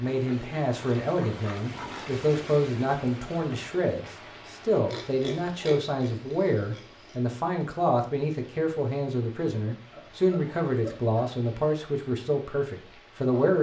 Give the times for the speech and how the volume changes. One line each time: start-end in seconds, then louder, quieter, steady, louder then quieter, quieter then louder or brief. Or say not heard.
0.0-13.5 steady.